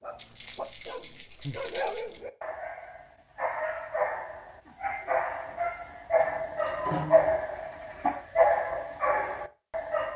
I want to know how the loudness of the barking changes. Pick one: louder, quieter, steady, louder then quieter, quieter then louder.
louder.